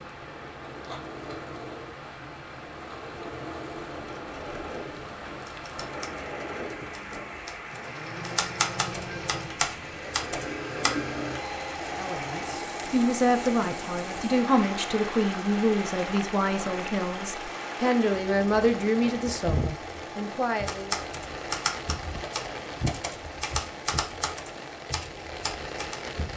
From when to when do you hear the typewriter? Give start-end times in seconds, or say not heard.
5.5-10.9, 20.6-26.0.